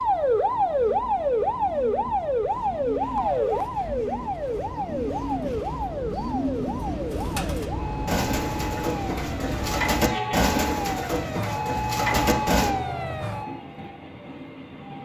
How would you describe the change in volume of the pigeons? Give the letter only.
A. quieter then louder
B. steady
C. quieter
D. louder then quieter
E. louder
E.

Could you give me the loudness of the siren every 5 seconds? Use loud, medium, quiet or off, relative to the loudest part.
loud, medium, medium.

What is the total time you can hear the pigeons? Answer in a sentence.
The pigeons can be heard for 12 seconds in total.